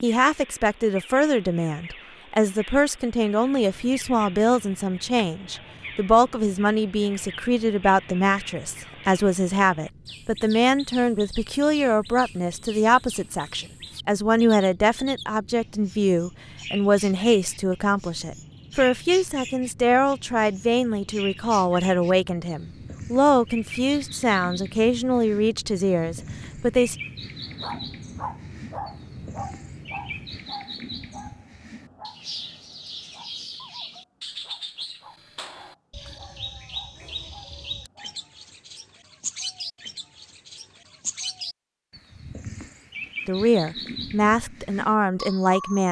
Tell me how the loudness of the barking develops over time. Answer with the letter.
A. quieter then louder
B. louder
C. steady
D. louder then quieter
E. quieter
E.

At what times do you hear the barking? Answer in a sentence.
The barking can be heard from 27.4 to 38.2 s.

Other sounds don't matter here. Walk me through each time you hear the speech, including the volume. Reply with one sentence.
The speech can be heard from 0.0 to 26.9 s, at a steady volume; and briefly from 43.2 to 45.8 s.